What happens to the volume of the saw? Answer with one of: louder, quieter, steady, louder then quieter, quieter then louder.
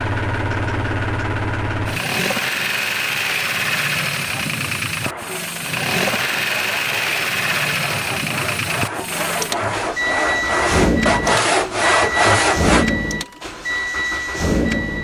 louder.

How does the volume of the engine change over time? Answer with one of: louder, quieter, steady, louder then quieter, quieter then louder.
steady.